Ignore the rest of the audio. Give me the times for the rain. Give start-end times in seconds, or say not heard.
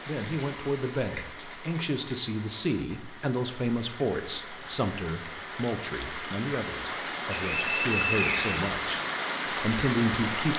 0.0-10.5.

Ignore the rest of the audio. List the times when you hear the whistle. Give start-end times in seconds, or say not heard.
7.3-8.6.